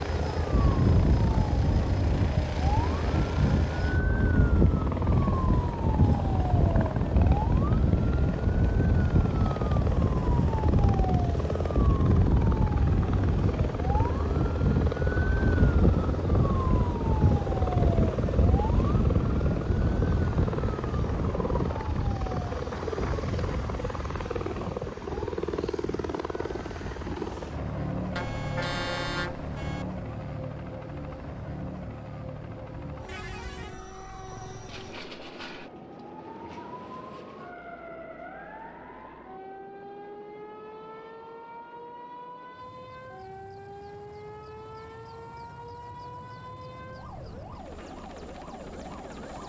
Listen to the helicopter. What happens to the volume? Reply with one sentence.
The loudness of the helicopter goes down.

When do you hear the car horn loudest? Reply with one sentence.
The loudest moment of the car horn is at 29 seconds.